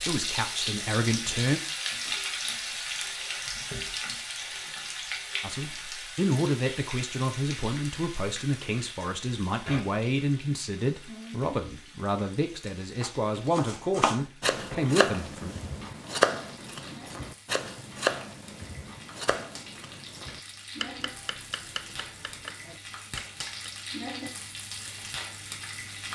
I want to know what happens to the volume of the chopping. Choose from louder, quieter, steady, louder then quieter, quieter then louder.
quieter.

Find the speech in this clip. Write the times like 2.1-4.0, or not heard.
0.1-1.6, 5.4-15.6.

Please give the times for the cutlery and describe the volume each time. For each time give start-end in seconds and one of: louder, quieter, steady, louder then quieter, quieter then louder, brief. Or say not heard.
not heard.